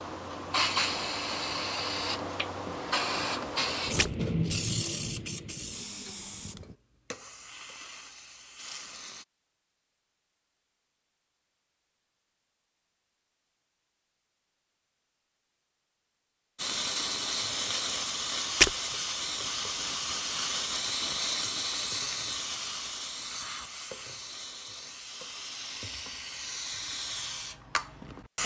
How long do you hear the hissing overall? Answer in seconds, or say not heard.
21 s.